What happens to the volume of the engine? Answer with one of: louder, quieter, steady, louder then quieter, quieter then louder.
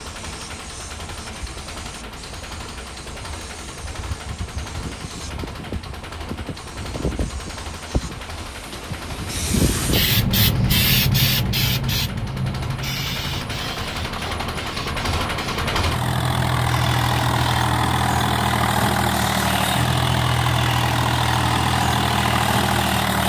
louder.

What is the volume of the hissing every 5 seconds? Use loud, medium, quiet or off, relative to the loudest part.
quiet, medium, loud, medium, medium.